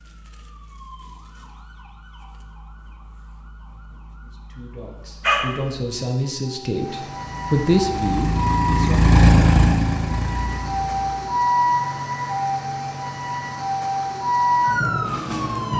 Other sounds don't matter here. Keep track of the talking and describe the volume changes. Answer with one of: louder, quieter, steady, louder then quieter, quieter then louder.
louder then quieter.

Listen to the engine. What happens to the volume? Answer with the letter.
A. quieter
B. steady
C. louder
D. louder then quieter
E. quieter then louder
D.